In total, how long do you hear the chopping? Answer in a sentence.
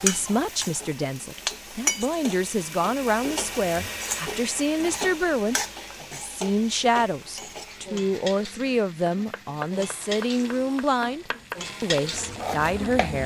The chopping can be heard for 4 seconds in total.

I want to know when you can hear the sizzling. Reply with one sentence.
You can hear the sizzling from 0.0 to 13.2 s.